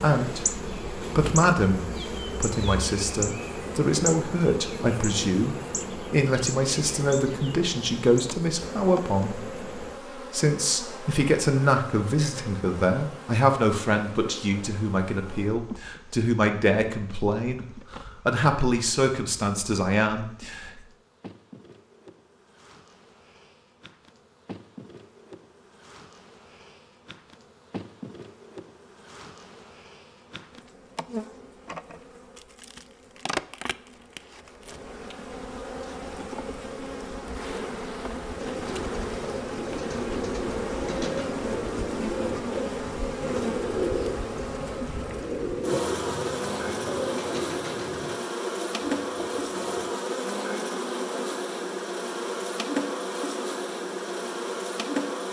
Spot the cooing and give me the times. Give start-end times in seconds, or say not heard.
38.4-49.9.